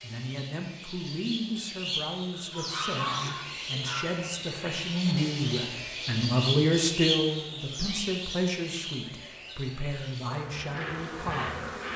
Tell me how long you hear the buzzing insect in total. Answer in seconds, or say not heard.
2 s.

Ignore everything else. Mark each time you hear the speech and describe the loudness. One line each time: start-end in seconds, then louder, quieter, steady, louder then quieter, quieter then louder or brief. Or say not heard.
0.0-11.8 louder then quieter.